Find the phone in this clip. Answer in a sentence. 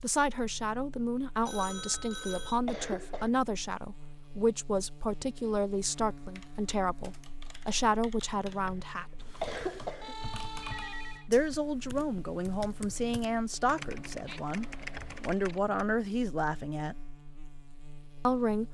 The phone can be heard from 1.4 to 2.6 s and from 10.0 to 11.3 s.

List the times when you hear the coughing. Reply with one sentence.
The coughing can be heard from 1.8 to 3.3 s, from 8.2 to 10.2 s and from 14.7 to 15.2 s.